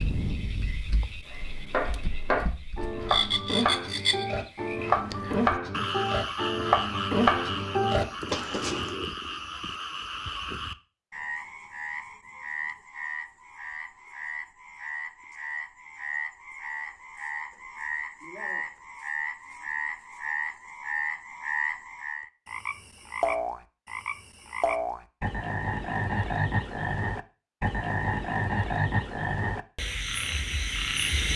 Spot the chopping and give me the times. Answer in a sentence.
You can hear the chopping from 1.3 to 8.8 s.